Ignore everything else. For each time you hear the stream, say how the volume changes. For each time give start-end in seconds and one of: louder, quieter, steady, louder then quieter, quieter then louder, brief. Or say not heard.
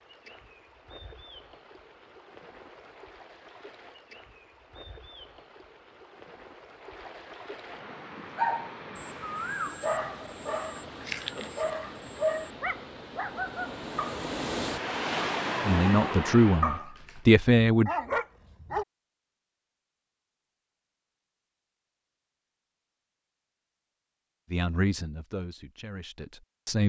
0.0-16.8 louder.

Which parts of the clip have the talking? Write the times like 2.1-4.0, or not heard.
15.7-17.9, 24.5-26.8.